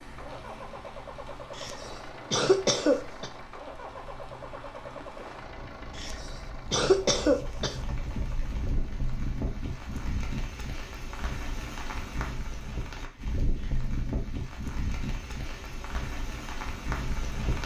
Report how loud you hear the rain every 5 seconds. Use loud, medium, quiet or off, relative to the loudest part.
medium, loud, loud, loud.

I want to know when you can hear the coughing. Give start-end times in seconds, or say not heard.
1.6-3.3, 6.0-7.8, 13.6-14.0.